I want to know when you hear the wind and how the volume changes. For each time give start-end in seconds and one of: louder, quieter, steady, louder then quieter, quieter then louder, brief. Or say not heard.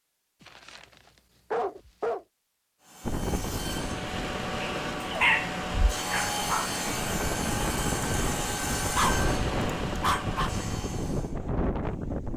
3.0-12.3 quieter then louder.